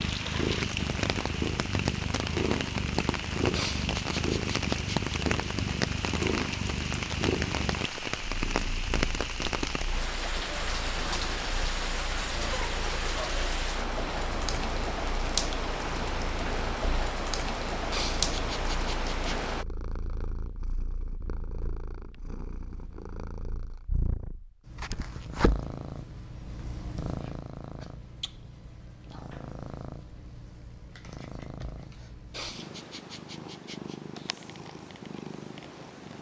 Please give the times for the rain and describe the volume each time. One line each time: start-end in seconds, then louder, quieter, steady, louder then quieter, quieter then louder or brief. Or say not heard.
0.0-19.6 steady.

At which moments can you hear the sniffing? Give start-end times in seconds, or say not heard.
3.5-5.2, 17.9-19.6, 32.3-34.0.